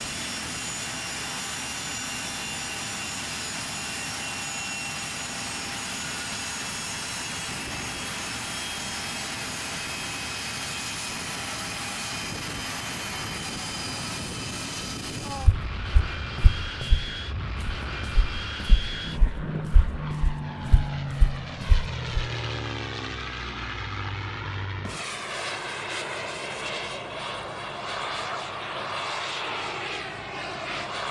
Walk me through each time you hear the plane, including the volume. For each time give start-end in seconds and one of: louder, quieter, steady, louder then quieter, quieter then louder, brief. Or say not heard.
0.0-31.0 steady.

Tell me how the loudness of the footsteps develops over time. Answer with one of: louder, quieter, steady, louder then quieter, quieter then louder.
quieter then louder.